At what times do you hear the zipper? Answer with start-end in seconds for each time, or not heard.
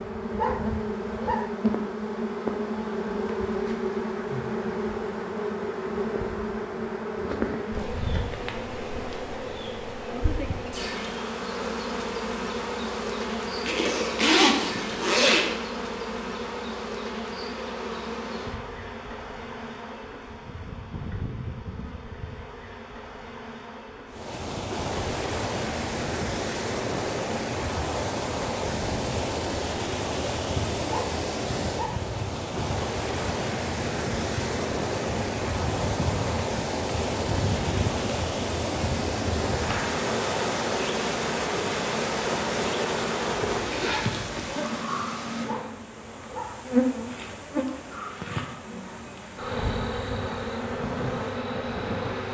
13.7-15.4, 43.5-44.4.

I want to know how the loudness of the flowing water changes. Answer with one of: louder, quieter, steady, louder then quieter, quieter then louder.
quieter.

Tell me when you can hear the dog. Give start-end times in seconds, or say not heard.
0.3-1.5, 30.9-32.0, 45.5-46.6.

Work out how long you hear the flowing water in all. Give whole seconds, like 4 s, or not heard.
28 s.